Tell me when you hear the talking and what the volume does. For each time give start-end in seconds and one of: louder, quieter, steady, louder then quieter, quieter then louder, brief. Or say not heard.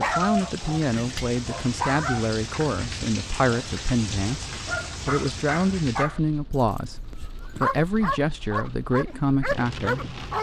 0.0-10.2 steady.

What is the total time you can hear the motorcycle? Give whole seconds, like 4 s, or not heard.
not heard.